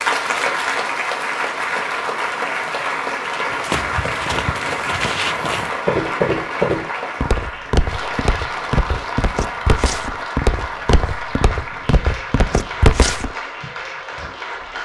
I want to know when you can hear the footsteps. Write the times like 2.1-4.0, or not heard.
3.5-13.3.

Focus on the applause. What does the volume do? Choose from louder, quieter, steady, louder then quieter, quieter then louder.
quieter.